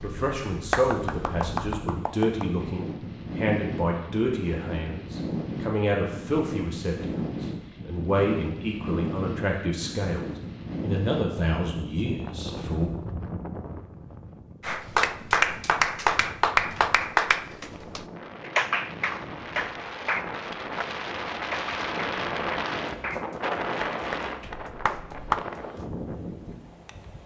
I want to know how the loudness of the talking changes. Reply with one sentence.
The loudness of the talking stays about the same.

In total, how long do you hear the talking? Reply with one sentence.
You can hear the talking for 13 seconds altogether.